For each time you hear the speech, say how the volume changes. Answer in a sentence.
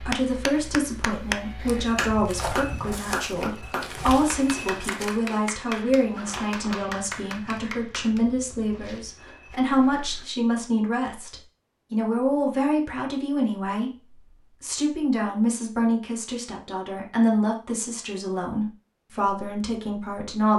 You can hear the speech from 0.0 to 20.5 s, at a steady volume.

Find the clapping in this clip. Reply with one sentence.
You can hear the clapping from 0.0 to 8.2 s.